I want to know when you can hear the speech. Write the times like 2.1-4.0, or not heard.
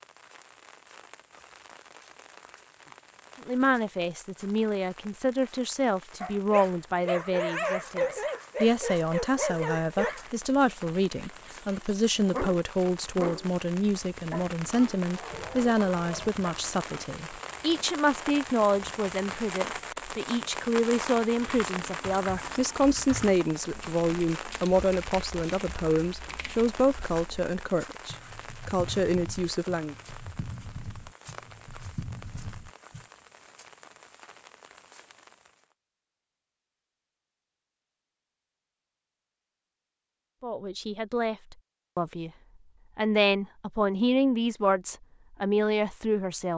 3.5-29.9, 40.4-42.3, 43.0-46.5.